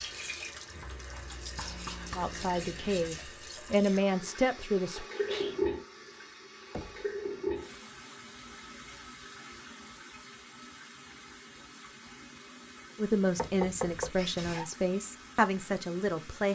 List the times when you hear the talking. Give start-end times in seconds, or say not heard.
2.1-5.0, 12.9-16.5.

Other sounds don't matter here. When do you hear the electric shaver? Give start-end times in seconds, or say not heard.
not heard.